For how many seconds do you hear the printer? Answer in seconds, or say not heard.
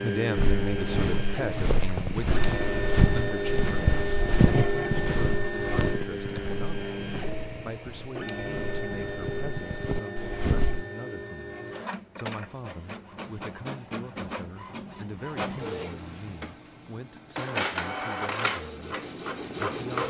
20 s.